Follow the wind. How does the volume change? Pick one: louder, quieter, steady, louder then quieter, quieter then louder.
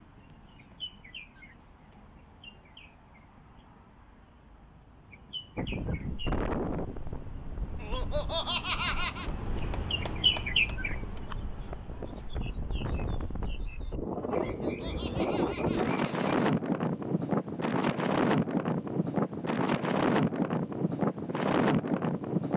quieter then louder.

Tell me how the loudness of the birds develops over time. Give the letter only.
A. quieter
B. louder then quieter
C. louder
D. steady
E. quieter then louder
B.